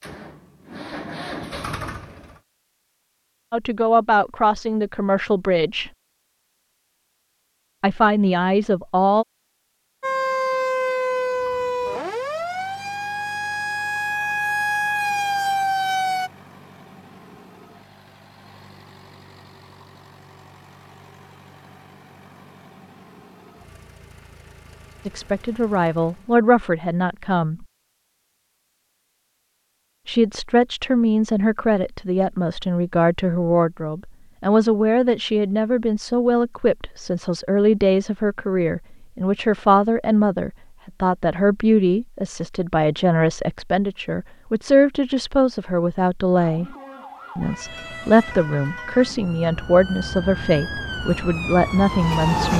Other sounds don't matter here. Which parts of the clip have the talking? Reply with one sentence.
The talking can be heard from 3.5 to 5.9 s, from 7.8 to 9.2 s, from 25.1 to 27.6 s, from 30.1 to 46.8 s and from 47.4 to 52.5 s.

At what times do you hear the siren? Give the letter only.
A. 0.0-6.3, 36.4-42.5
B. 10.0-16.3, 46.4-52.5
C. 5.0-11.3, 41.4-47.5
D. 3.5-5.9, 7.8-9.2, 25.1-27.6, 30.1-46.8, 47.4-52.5
B.